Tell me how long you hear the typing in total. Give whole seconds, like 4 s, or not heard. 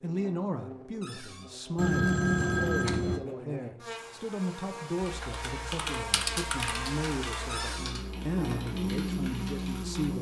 5 s.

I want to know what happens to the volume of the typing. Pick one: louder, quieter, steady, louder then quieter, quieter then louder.
quieter.